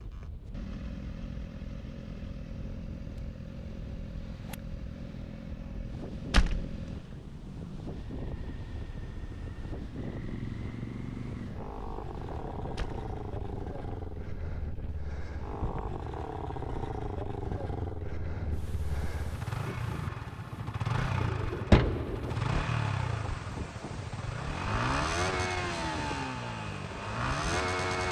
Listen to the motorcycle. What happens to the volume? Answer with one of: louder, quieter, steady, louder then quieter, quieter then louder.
louder.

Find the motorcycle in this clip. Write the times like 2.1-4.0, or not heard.
0.0-28.0.